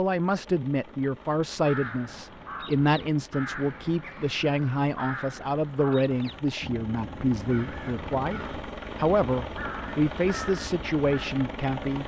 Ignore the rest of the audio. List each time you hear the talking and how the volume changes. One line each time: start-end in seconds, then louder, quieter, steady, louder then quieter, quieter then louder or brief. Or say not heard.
0.0-12.0 steady.